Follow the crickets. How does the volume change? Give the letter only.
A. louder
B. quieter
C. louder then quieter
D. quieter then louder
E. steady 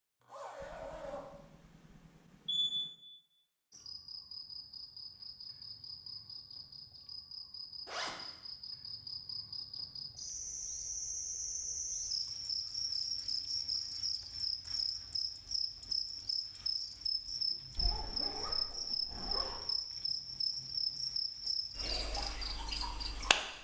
A.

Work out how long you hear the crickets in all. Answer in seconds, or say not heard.
20 s.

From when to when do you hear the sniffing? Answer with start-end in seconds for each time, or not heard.
not heard.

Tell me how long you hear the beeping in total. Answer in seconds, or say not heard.
2 s.